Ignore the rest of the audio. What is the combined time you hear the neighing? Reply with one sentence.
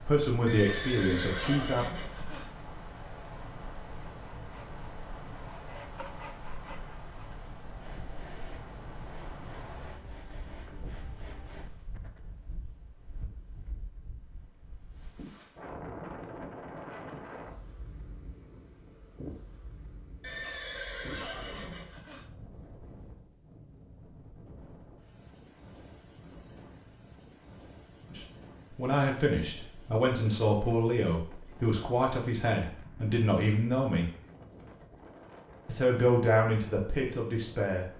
You can hear the neighing for 4 seconds altogether.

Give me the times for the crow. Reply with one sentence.
The crow can't be heard in this clip.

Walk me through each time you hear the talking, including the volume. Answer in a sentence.
You can hear the talking briefly from 0.0 to 1.9 s; from 28.1 to 34.1 s, at a steady volume; and briefly from 35.6 to 37.9 s.